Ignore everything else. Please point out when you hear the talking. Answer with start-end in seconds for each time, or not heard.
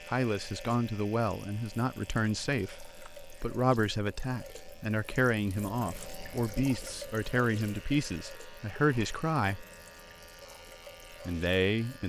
0.0-9.7, 11.2-12.0.